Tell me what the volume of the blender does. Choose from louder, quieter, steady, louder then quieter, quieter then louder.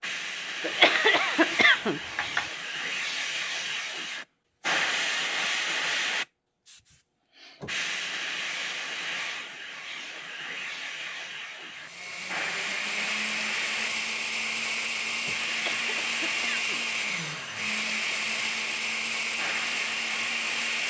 steady.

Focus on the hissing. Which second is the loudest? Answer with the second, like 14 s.
5 s.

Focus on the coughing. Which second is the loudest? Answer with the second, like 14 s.
1 s.